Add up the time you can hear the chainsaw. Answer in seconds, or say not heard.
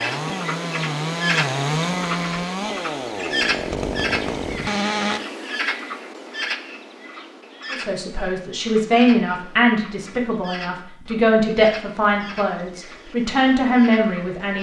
5 s.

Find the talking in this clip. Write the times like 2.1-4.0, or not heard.
7.7-14.5.